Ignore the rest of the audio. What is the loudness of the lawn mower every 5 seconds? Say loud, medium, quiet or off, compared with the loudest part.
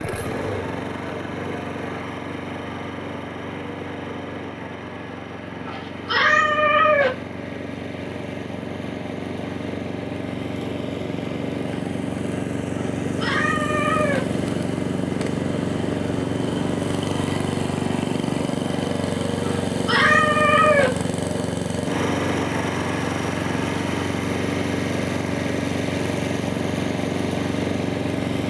medium, medium, loud, loud, loud, loud.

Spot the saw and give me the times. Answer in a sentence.
You can't hear the saw here.